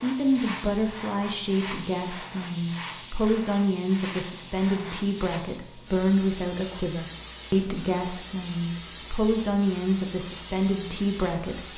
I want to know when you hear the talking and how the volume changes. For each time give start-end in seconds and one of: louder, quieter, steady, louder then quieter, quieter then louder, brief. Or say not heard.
0.0-11.7 steady.